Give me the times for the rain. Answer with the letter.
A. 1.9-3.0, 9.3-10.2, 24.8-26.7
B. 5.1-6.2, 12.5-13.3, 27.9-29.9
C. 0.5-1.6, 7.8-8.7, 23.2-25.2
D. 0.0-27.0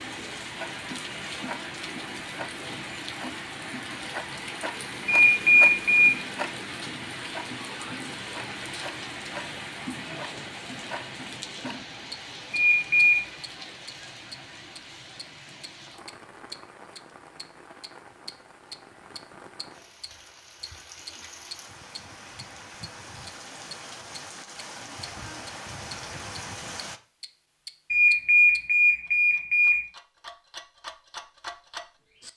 D.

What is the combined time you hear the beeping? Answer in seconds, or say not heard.
4 s.